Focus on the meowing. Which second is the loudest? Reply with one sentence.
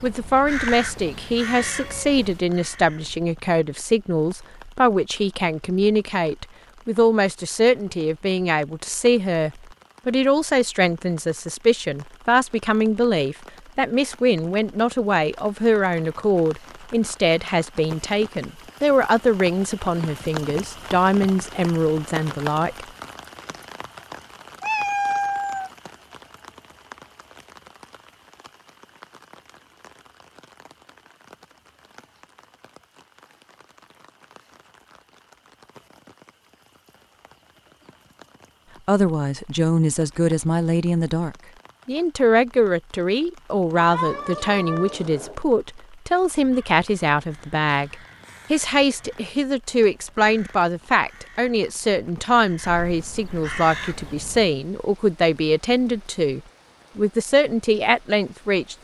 The volume of the meowing peaks at 25 seconds.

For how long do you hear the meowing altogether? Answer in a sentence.
You can hear the meowing for 4 seconds altogether.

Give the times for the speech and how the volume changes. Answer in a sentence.
The speech can be heard from 0.0 to 22.9 s, at a steady volume; and from 38.9 to 58.7 s, at a steady volume.